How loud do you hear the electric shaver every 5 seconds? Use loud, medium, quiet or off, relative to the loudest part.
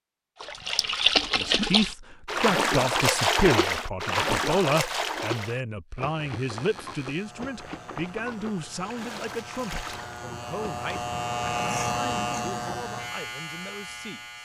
off, quiet, loud.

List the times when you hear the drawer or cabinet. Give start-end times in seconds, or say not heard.
not heard.